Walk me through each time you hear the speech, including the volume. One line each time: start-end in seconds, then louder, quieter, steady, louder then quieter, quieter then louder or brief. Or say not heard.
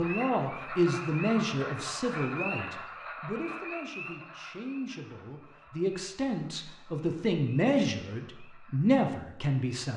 0.0-9.9 quieter then louder.